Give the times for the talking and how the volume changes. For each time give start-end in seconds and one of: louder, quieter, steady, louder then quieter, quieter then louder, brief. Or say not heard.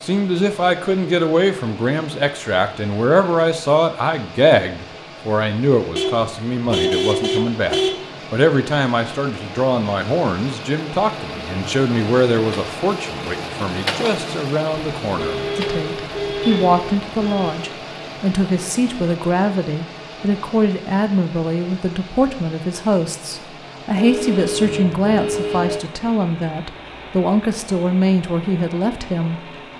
0.0-29.4 steady.